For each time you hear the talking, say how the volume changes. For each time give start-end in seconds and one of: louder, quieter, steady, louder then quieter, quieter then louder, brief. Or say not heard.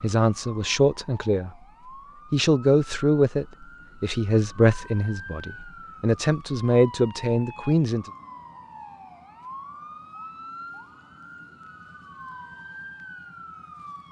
0.0-1.5 brief
2.3-8.1 quieter then louder.